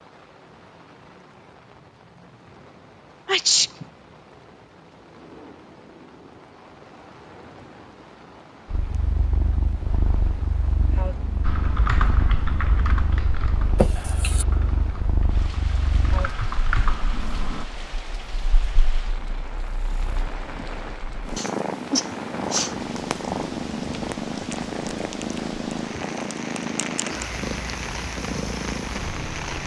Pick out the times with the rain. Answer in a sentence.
You can hear the rain from 0.0 to 29.6 s.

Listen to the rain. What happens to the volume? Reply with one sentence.
The loudness of the rain goes up.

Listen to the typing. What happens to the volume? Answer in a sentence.
The loudness of the typing goes down, then up.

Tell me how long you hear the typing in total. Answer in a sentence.
The typing can be heard for 6 seconds in total.